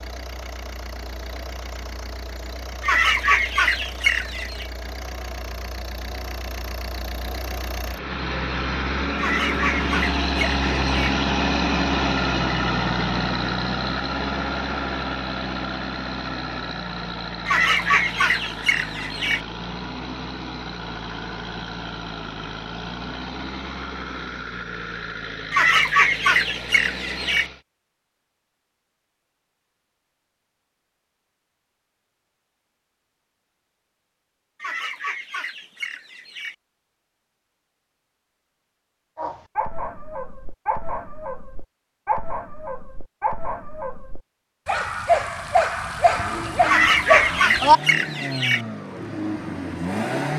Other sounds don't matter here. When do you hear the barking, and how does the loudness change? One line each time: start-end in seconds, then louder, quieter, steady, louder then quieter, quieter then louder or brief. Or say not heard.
39.1-47.8 louder.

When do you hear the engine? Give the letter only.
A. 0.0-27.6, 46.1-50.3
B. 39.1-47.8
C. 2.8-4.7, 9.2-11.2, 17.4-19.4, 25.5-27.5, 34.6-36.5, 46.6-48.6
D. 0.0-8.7
A.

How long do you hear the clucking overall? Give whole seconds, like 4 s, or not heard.
12 s.